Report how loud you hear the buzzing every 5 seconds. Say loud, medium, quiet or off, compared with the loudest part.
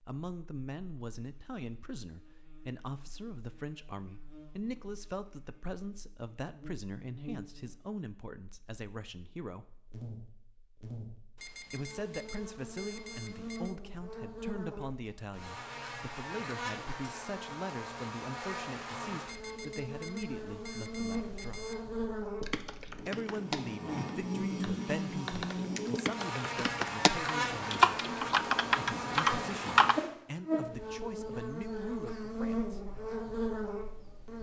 quiet, quiet, medium, medium, loud, loud, loud.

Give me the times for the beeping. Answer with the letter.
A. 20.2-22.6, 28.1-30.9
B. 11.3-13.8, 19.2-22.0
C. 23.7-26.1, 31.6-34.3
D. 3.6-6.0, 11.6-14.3
B.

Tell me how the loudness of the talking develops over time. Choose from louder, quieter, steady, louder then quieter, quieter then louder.
steady.